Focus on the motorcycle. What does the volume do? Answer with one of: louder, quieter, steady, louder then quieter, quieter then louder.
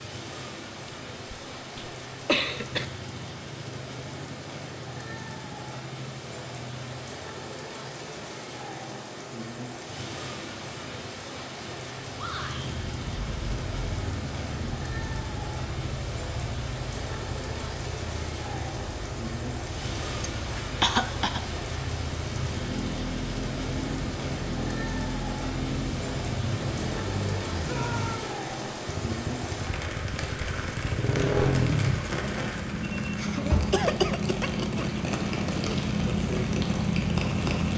louder.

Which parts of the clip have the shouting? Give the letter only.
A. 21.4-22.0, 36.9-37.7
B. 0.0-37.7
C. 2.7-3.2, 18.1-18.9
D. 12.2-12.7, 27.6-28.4
D.